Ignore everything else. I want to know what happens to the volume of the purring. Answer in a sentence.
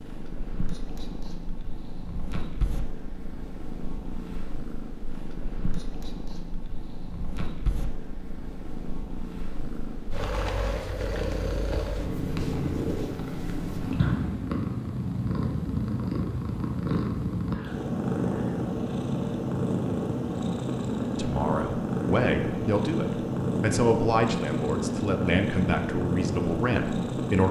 The loudness of the purring goes up.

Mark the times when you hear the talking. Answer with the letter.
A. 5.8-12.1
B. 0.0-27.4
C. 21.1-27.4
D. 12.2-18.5
C.